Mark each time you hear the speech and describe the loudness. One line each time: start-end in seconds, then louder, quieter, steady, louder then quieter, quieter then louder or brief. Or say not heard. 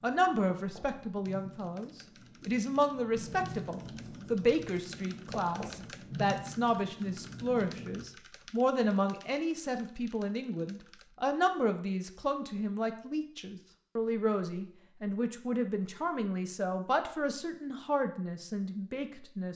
0.0-19.5 steady.